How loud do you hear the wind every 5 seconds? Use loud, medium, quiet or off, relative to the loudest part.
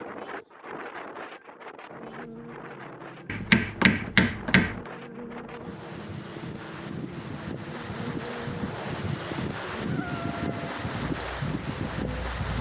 medium, loud, loud.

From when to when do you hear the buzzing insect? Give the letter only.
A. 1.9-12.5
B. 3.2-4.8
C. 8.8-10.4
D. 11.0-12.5
A.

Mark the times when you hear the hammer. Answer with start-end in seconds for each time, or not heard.
3.2-4.8.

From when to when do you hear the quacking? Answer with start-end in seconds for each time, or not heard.
not heard.